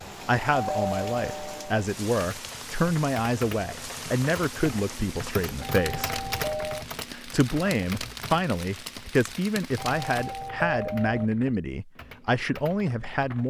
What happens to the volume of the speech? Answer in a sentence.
The loudness of the speech stays about the same.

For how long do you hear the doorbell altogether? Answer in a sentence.
The doorbell can be heard for 4 seconds in total.